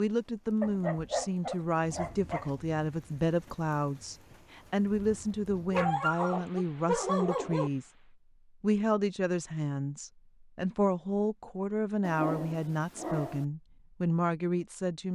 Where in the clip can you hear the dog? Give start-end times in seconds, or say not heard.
0.6-2.5, 5.7-7.7, 12.0-13.4.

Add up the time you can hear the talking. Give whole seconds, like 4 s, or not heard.
14 s.